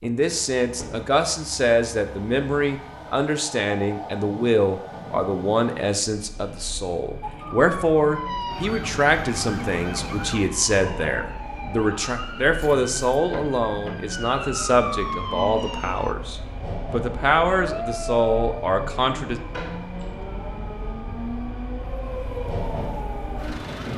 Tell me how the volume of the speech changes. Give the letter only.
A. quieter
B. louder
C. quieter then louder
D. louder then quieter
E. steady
E.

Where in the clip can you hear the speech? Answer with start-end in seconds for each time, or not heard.
0.0-19.4.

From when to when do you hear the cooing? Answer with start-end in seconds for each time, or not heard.
not heard.